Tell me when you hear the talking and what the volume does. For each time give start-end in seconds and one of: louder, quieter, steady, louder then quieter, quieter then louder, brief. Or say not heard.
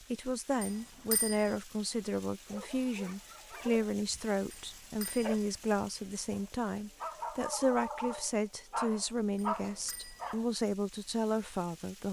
0.0-12.0 steady.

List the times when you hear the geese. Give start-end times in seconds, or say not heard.
not heard.